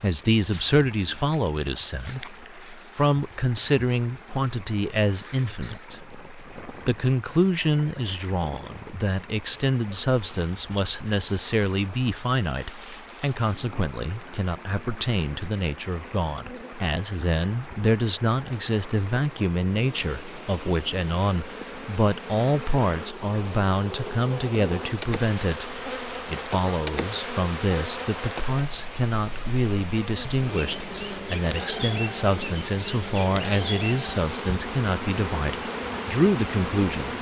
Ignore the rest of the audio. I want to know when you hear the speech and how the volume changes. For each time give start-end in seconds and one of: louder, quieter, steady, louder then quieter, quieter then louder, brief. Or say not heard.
0.0-37.1 steady.